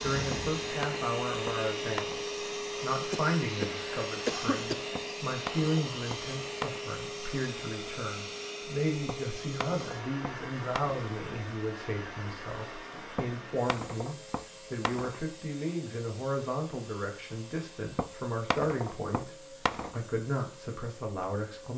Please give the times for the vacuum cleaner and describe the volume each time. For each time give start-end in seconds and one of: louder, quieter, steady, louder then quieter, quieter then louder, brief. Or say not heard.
0.0-21.7 quieter.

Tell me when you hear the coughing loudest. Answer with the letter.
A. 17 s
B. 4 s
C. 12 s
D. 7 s
B.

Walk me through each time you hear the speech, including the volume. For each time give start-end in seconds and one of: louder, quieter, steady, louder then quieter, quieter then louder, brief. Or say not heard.
0.0-21.7 steady.